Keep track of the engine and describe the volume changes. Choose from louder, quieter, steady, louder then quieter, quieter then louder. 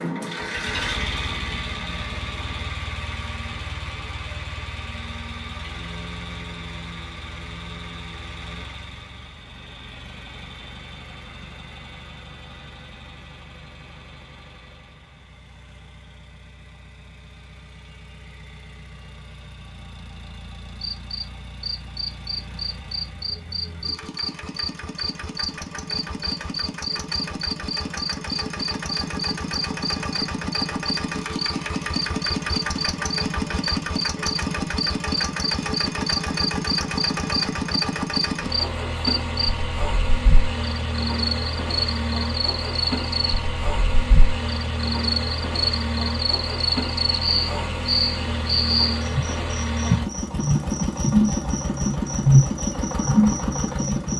quieter then louder.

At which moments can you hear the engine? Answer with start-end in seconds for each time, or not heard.
0.0-54.1.